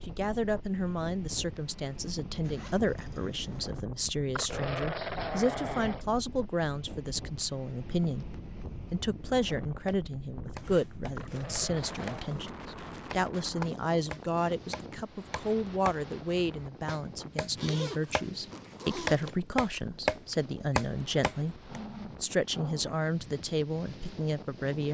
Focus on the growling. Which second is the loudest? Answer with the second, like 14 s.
5 s.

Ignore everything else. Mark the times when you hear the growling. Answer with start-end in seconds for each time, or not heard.
4.3-6.0, 11.2-12.2, 21.6-22.9.